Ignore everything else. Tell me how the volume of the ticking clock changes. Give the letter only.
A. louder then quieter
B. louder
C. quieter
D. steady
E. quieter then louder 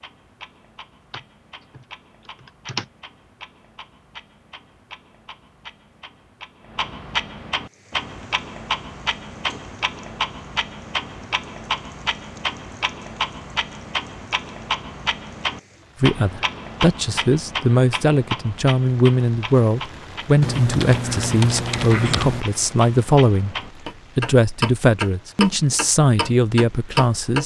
B.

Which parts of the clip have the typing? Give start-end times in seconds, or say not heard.
1.1-2.9, 20.4-22.4.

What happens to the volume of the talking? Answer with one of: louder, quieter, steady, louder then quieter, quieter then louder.
steady.